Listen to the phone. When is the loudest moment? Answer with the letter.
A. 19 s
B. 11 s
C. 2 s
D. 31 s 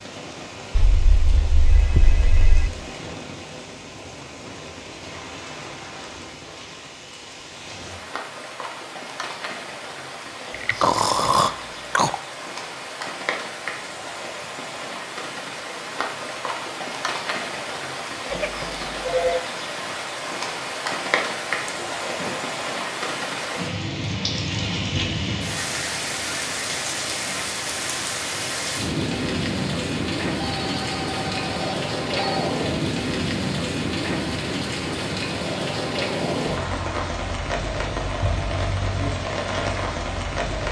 A.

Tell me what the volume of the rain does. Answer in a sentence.
The volume of the rain goes up.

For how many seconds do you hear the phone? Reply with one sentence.
The phone can be heard for 5 seconds in total.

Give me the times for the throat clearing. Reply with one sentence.
You can hear the throat clearing from 10.5 to 12.2 s and from 21.6 to 22.5 s.